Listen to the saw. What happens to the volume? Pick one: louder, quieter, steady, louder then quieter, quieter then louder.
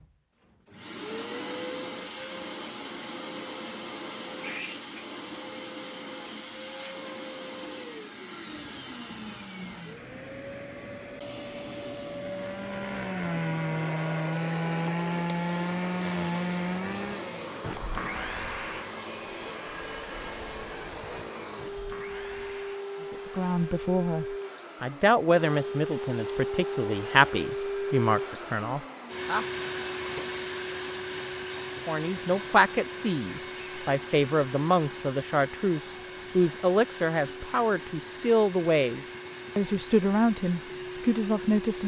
quieter.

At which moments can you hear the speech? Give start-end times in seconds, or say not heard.
23.1-29.4, 31.9-41.8.